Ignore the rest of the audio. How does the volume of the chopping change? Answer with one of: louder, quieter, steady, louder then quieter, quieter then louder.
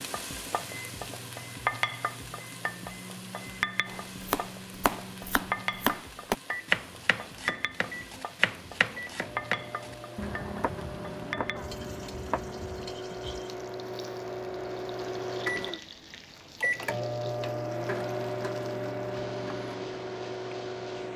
quieter.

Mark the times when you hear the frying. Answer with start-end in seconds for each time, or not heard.
0.0-21.1.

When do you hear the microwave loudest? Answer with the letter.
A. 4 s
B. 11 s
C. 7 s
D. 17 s
D.